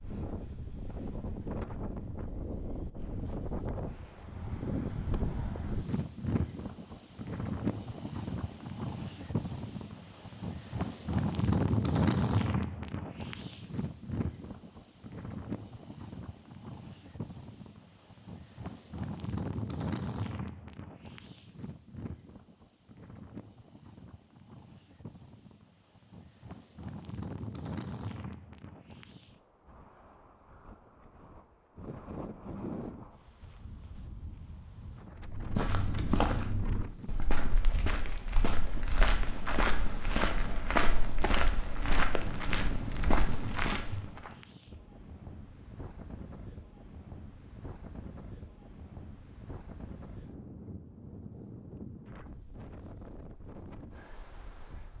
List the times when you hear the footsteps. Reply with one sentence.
You can hear the footsteps from 35.2 to 44.3 s.